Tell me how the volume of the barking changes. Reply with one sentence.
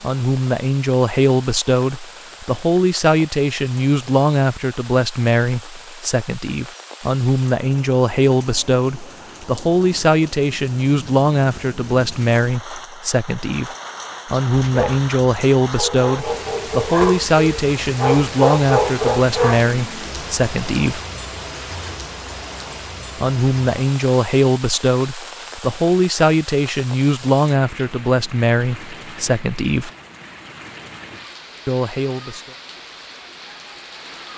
The loudness of the barking goes up.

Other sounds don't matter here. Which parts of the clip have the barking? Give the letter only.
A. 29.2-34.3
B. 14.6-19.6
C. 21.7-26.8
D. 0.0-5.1
B.